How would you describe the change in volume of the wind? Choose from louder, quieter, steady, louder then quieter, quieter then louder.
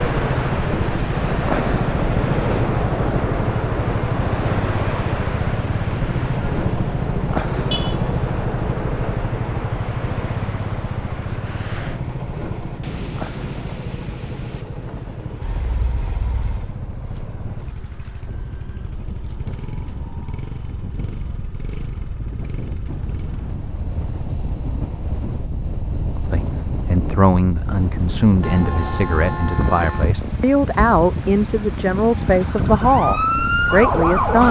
quieter then louder.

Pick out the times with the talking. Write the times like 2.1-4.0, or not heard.
26.1-34.4.